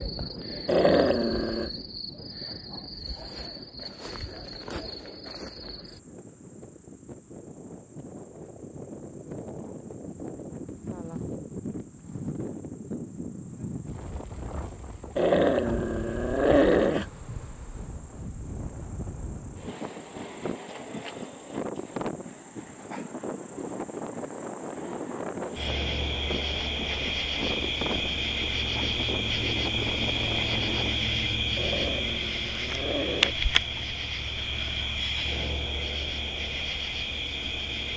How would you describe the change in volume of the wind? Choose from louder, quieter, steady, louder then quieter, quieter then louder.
louder.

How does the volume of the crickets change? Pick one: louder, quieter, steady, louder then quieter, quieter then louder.
quieter then louder.